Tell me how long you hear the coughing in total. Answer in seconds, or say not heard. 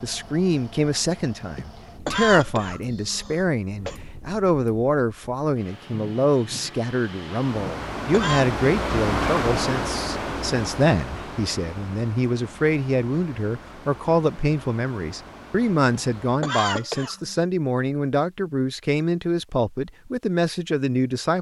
5 s.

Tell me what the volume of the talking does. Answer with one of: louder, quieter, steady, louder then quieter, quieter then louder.
steady.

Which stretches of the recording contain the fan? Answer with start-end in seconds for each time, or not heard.
0.0-16.4.